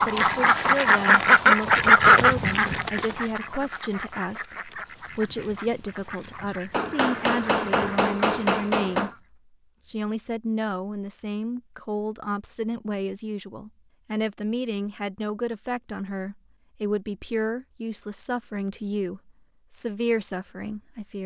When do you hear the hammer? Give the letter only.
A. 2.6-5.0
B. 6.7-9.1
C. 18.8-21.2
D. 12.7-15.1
B.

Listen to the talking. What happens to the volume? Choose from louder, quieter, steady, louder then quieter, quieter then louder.
steady.